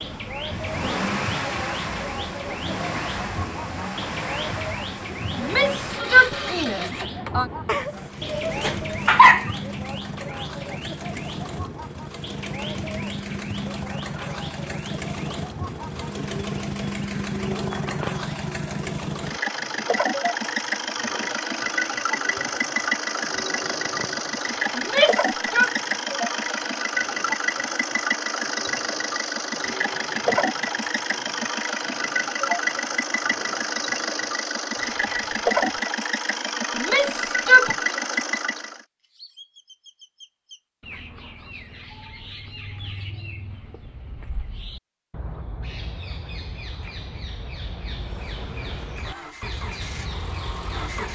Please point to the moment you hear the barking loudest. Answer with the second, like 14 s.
9 s.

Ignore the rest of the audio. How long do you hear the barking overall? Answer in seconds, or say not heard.
2 s.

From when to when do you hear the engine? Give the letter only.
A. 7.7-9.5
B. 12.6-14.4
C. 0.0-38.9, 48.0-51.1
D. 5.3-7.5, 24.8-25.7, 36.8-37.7
C.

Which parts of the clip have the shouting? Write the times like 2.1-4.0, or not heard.
5.3-7.5, 24.8-25.7, 36.8-37.7.